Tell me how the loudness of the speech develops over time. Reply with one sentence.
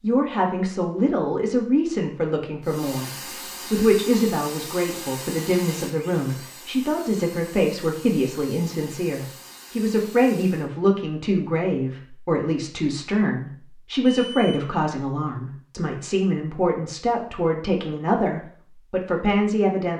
The loudness of the speech stays about the same.